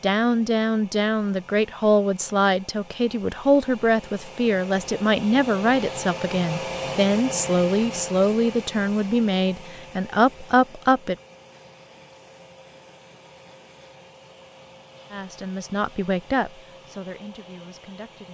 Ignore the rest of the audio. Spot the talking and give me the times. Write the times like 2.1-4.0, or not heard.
0.0-11.2, 15.1-18.2.